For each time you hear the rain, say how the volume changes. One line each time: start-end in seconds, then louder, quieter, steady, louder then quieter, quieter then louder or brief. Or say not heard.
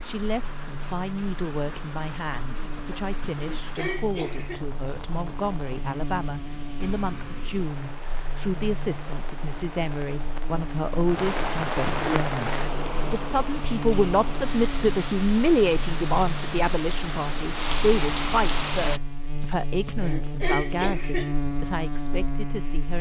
0.0-19.0 louder.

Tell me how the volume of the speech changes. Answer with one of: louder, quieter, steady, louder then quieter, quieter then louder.
louder then quieter.